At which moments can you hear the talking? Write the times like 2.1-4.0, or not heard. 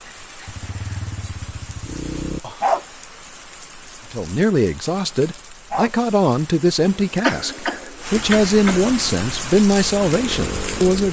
4.1-11.0.